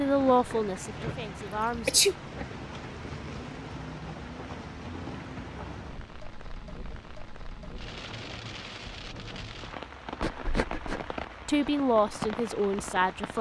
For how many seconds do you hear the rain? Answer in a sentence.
The rain can be heard for 13 seconds in total.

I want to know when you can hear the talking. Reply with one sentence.
The talking can be heard from 0.0 to 1.9 s and from 11.4 to 13.3 s.